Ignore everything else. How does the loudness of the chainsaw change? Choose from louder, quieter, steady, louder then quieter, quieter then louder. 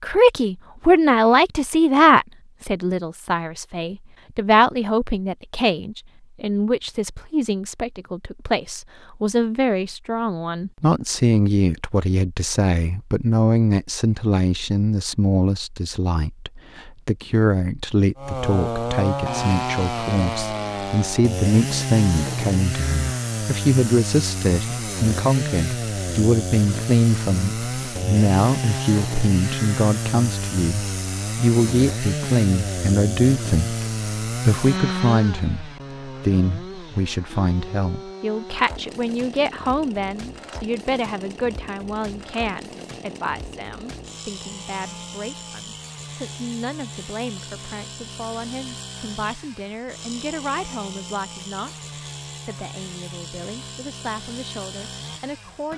quieter.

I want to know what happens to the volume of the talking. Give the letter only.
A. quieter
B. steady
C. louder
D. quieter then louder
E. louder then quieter
A.